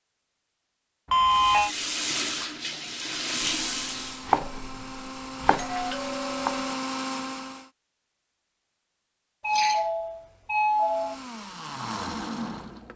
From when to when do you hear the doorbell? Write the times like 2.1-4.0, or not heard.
1.1-1.7, 5.5-6.8, 9.4-11.2.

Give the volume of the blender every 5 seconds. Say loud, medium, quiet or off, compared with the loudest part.
medium, loud, loud.